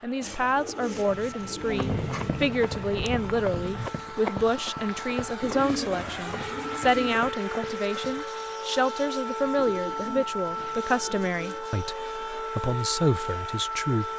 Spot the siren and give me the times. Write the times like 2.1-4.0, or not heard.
0.1-14.1.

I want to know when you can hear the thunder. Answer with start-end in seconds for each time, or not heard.
1.1-3.9.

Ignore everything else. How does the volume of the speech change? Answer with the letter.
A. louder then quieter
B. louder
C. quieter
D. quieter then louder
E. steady
E.